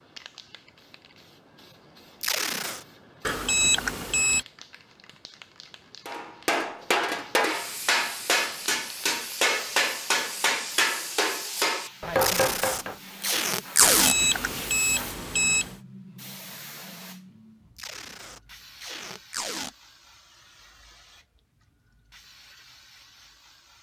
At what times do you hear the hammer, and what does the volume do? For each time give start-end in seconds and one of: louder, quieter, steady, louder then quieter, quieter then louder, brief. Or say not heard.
6.0-12.9 steady.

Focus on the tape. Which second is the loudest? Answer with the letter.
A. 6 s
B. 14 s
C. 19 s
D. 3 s
B.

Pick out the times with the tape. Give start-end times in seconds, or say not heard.
2.2-2.9, 12.2-14.2, 17.8-19.7.